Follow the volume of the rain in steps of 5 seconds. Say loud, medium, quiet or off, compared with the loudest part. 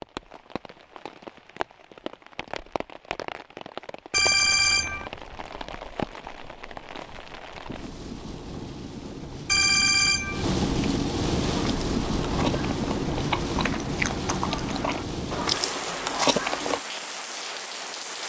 medium, medium, loud, medium.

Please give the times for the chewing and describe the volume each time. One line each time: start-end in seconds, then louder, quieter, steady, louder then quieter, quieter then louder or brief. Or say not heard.
11.4-16.8 louder.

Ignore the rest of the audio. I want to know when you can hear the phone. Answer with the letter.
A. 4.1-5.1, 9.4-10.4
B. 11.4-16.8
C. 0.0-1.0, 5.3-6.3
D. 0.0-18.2
A.